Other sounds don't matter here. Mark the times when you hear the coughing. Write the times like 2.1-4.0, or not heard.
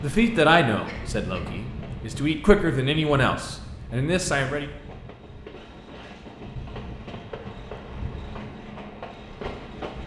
0.8-1.5.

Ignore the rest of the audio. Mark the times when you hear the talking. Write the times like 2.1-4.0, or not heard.
0.0-4.7.